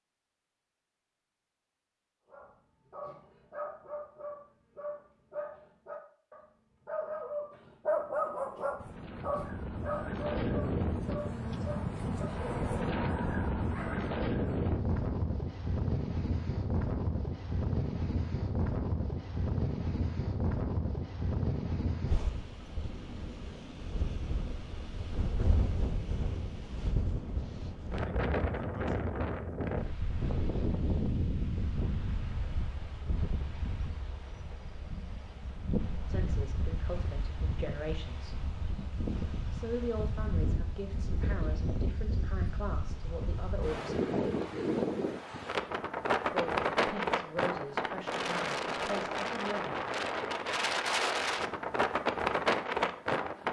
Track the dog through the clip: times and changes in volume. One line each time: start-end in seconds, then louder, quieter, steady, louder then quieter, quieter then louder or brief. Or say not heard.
2.3-14.1 louder then quieter.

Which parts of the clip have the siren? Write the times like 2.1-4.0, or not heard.
not heard.